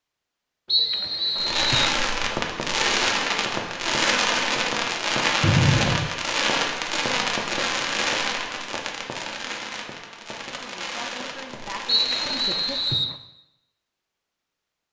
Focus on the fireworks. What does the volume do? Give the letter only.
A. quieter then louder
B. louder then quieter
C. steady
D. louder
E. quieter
E.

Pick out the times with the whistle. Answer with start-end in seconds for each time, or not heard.
0.7-2.0, 5.4-6.1, 11.8-13.2.